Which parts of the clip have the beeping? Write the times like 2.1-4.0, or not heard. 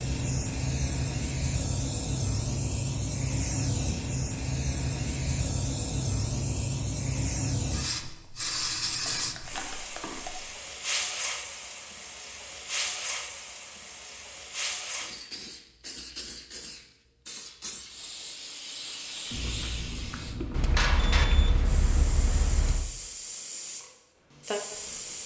20.5-22.9.